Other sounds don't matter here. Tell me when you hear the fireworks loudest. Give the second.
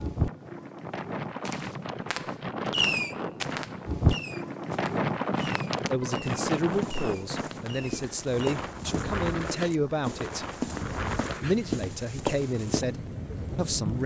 3 s.